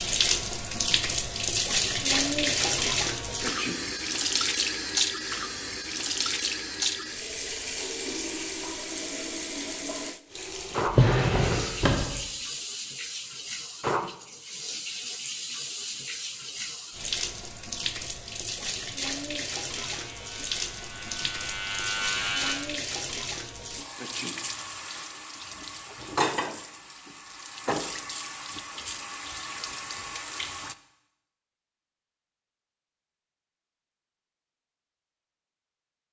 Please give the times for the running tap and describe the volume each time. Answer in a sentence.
You can hear the running tap from 0.0 to 30.8 s, getting quieter.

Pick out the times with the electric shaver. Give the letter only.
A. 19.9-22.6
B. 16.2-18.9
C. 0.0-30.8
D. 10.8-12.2
A.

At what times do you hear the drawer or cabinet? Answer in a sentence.
The drawer or cabinet can be heard from 10.8 to 12.2 s.